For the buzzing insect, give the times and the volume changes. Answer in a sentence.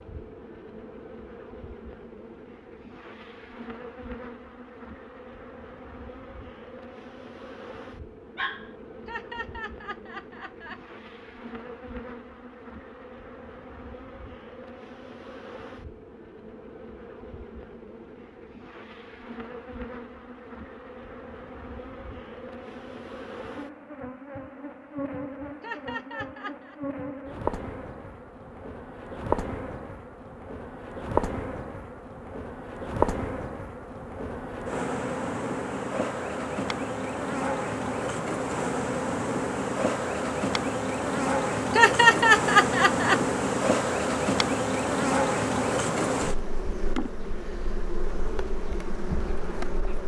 You can hear the buzzing insect from 0.0 to 50.0 s, getting louder.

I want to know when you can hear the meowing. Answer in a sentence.
You can't hear the meowing here.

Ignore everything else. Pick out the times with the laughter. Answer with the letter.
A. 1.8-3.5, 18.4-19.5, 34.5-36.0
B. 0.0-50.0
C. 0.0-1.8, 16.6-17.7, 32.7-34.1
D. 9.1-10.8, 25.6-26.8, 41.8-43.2
D.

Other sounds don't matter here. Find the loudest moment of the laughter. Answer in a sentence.
The loudest moment of the laughter is at 42 seconds.